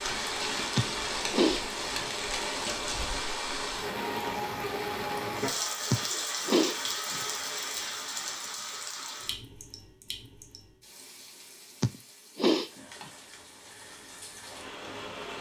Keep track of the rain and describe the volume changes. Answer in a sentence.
The loudness of the rain goes down.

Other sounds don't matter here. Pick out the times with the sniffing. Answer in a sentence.
The sniffing can be heard from 0.8 to 2.0 s, from 5.9 to 7.2 s and from 11.8 to 12.7 s.